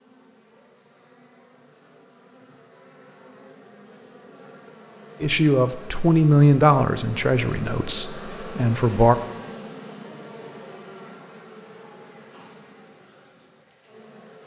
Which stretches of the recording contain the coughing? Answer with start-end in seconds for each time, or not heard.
not heard.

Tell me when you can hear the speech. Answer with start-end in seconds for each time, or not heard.
5.2-9.2.